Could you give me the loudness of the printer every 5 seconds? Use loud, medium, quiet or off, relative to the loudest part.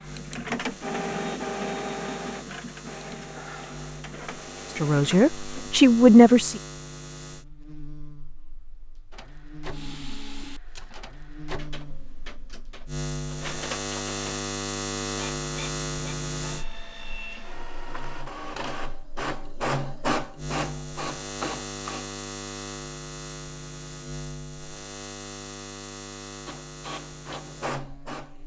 loud, medium, medium, loud, loud, medium.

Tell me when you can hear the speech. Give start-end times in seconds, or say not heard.
4.8-6.6.